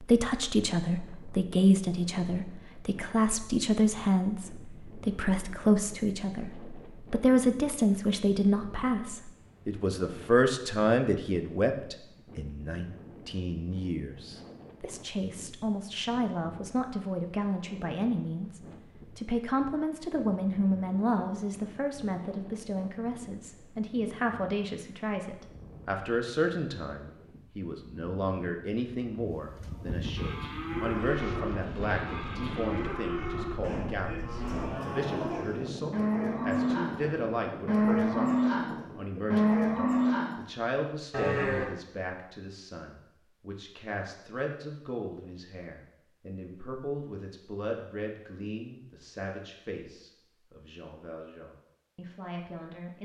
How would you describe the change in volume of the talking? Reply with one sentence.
The volume of the talking goes down.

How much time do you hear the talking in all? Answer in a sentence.
The talking can be heard for 53 seconds in total.